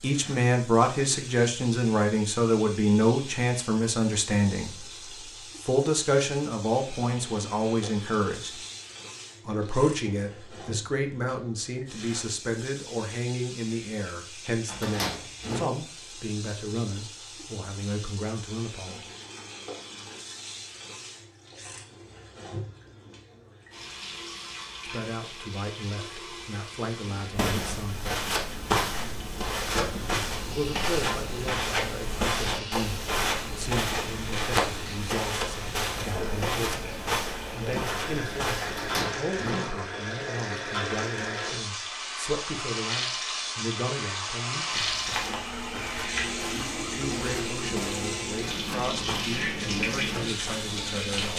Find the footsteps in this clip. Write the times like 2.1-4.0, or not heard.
27.3-38.9, 44.7-51.3.